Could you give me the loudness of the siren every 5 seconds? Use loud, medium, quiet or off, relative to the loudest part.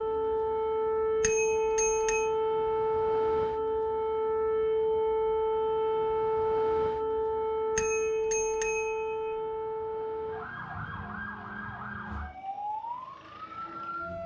loud, loud, medium.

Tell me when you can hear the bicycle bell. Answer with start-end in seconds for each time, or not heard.
1.2-2.3, 7.8-9.3.